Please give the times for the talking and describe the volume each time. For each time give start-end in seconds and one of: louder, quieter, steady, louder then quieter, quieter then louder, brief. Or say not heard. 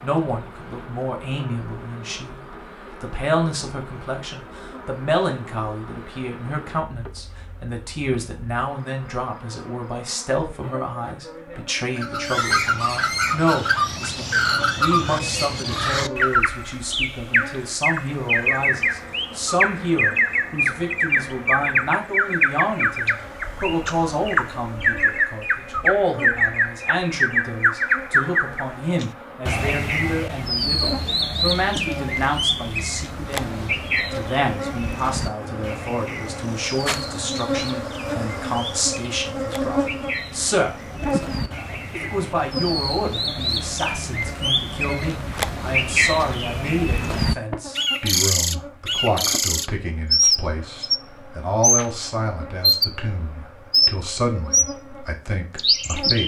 0.0-56.2 steady.